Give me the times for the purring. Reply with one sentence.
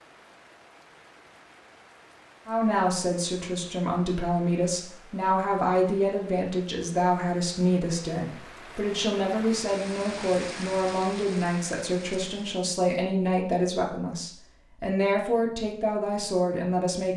The purring can't be heard in this clip.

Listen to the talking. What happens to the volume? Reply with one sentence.
The volume of the talking stays about the same.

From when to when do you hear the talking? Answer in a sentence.
You can hear the talking from 2.5 to 17.1 s.